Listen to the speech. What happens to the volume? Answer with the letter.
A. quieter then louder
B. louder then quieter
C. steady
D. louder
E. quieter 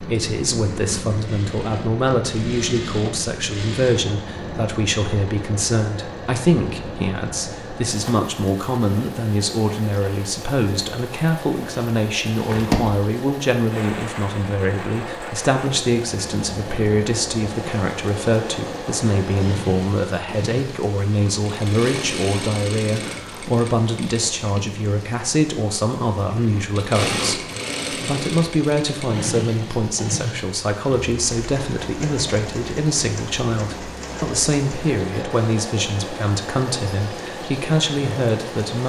C.